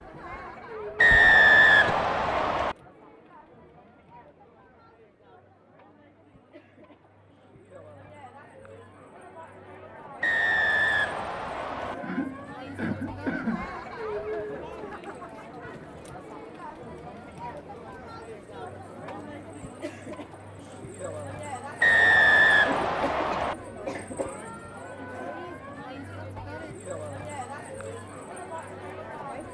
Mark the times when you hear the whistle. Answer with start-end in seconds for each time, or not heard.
0.9-2.8, 10.2-11.9, 21.8-23.6.